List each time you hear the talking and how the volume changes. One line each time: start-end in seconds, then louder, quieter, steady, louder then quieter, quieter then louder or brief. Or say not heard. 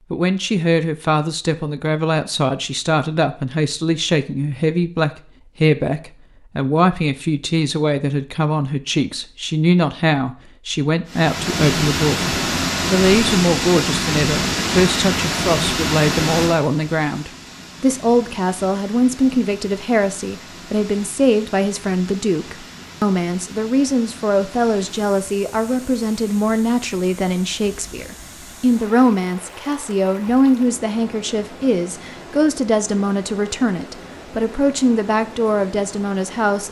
0.1-36.6 steady.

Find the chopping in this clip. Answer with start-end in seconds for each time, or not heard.
not heard.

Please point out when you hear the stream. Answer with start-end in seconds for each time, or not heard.
11.1-36.6.